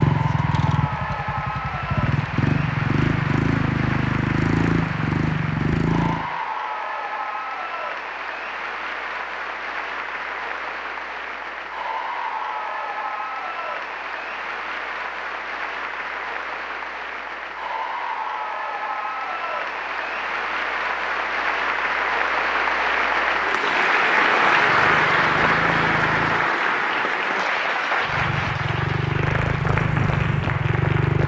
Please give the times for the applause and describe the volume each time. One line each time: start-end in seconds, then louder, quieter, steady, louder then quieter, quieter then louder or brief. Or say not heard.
0.0-31.2 louder.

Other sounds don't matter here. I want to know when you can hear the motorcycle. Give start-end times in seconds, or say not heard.
0.0-6.3, 24.4-26.5, 28.0-31.2.